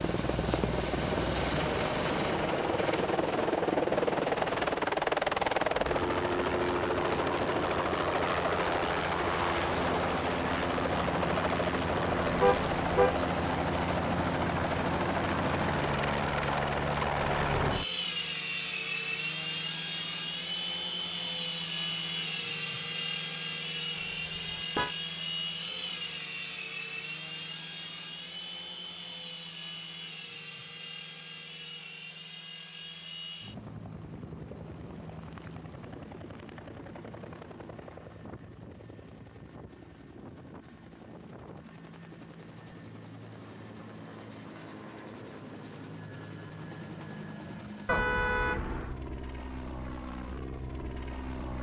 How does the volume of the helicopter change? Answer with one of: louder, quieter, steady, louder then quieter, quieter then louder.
quieter.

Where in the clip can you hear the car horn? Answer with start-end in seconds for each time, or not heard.
12.2-13.2, 24.0-24.9, 47.9-49.0.